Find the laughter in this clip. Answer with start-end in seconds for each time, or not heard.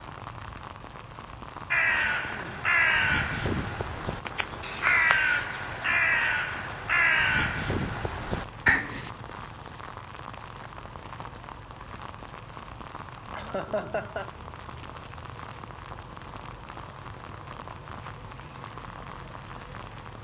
13.3-14.3.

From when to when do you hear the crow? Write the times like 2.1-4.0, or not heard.
1.7-9.1.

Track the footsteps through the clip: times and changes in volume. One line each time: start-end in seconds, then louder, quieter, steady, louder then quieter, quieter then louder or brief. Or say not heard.
not heard.